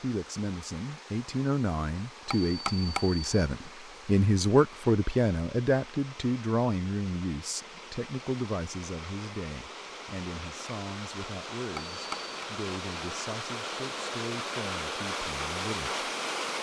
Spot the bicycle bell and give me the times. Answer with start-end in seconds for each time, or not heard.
2.3-3.5, 11.8-12.3.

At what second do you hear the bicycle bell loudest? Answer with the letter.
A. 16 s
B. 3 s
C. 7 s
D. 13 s
B.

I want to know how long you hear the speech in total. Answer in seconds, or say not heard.
16 s.